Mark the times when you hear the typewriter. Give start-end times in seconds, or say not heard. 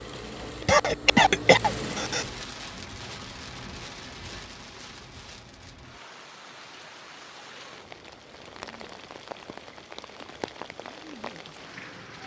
not heard.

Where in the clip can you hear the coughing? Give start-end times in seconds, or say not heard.
0.6-2.2.